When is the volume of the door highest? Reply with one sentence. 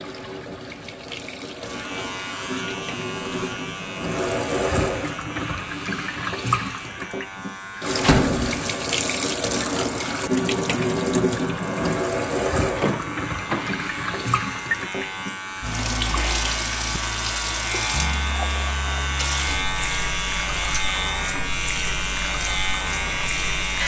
The volume of the door peaks at 8 seconds.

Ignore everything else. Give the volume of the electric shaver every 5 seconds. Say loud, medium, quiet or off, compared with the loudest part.
medium, medium, medium, loud, loud.